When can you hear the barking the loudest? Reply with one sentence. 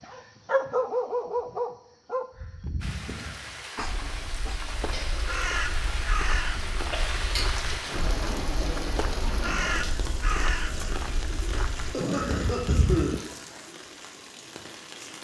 The loudest moment of the barking is at 1 second.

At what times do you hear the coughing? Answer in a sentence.
You can hear the coughing from 4.9 to 5.5 s and from 11.9 to 13.2 s.